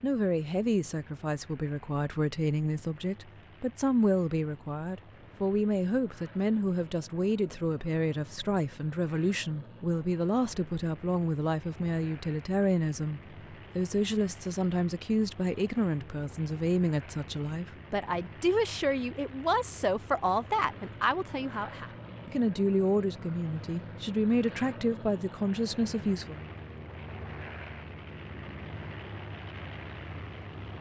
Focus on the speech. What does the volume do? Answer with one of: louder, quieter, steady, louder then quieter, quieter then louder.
steady.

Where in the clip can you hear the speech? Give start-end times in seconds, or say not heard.
0.0-26.4.